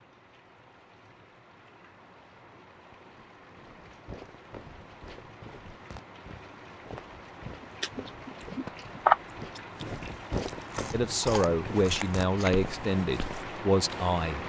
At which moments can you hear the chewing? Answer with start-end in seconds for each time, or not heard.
7.6-13.4.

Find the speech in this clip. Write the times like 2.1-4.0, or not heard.
10.9-14.4.